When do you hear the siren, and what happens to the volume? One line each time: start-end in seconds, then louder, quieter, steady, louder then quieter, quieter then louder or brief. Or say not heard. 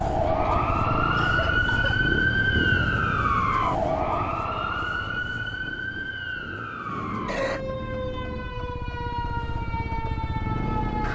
0.0-11.0 quieter.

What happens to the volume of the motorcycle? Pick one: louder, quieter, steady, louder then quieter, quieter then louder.
quieter then louder.